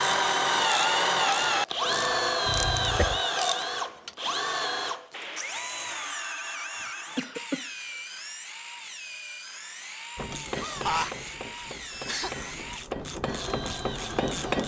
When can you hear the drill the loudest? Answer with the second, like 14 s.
1 s.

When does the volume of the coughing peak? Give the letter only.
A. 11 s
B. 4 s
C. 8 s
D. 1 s
A.